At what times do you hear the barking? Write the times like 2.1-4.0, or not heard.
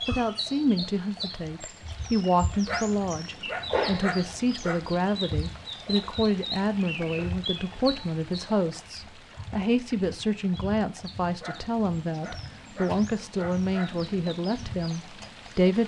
2.6-4.8, 11.4-14.0.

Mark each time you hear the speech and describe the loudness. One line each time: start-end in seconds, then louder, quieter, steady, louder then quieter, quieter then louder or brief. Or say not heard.
0.1-15.8 steady.